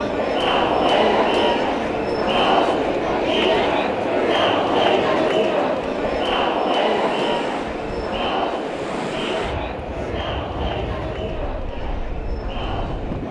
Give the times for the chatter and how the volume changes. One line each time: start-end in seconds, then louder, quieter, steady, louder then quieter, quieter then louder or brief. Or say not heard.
0.0-13.2 quieter.